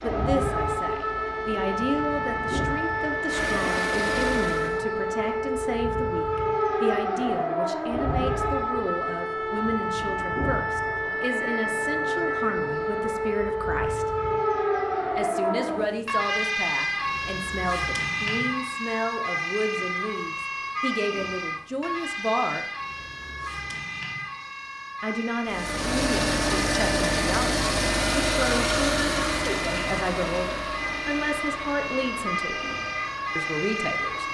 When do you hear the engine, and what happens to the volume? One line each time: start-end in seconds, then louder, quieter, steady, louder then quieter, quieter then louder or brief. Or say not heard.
0.0-4.8 louder
25.4-34.2 quieter.